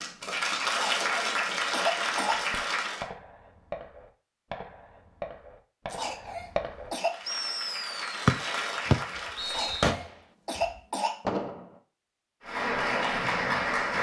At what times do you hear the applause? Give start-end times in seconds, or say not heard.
0.0-3.0, 7.0-9.9, 12.4-13.9.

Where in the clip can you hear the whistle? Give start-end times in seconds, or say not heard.
8.2-9.8.